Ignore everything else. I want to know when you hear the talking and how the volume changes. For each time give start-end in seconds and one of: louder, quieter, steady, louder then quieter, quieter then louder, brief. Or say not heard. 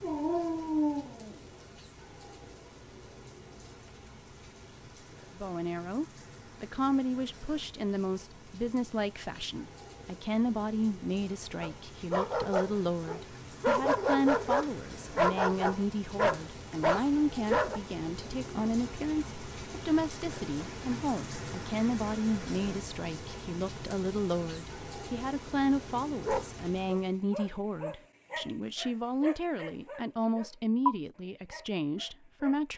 5.3-32.7 steady.